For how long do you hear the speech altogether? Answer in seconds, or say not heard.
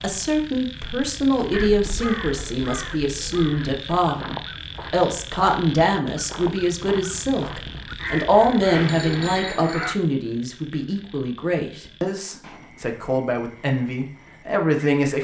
15 s.